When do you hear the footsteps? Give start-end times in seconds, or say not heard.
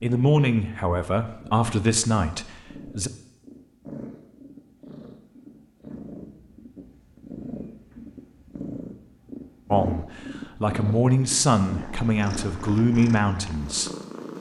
not heard.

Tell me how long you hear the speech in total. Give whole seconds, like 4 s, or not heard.
7 s.